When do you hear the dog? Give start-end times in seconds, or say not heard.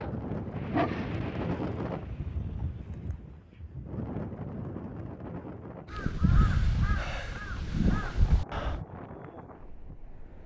0.0-2.4.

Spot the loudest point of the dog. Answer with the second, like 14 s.
1 s.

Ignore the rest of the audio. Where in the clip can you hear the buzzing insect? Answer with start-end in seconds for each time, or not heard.
not heard.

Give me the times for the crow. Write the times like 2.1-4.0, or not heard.
5.9-8.8.